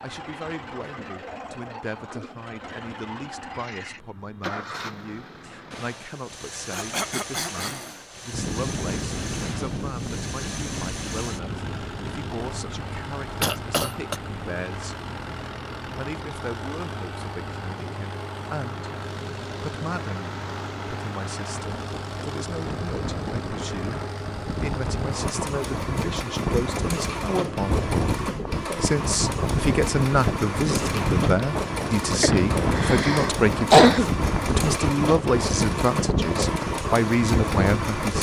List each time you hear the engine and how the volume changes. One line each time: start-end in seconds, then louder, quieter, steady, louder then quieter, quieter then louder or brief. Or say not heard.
0.0-38.1 louder.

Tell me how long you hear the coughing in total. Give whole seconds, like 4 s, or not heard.
4 s.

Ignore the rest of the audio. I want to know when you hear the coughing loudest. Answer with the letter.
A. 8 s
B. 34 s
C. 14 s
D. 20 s
B.